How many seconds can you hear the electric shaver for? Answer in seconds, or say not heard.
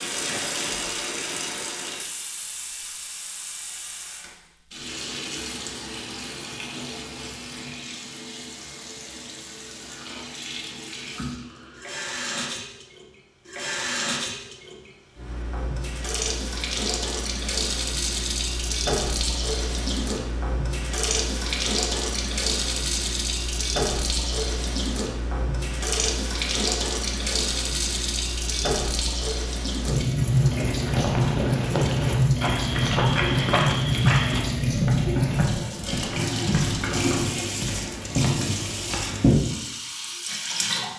not heard.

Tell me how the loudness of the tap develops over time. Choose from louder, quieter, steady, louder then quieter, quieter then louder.
louder.